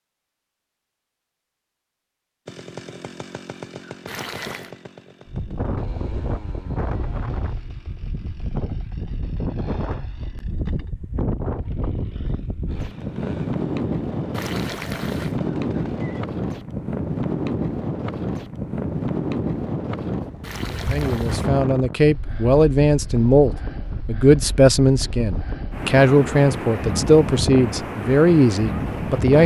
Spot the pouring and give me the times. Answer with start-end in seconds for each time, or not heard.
4.0-4.8, 14.3-15.4, 20.4-21.5.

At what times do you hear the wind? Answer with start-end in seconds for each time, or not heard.
5.2-29.4.